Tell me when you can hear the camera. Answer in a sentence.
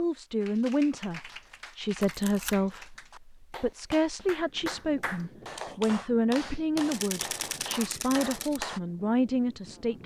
You can hear the camera from 2.0 to 2.7 s and from 6.9 to 8.6 s.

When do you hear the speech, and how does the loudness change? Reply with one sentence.
You can hear the speech from 0.0 to 10.0 s, at a steady volume.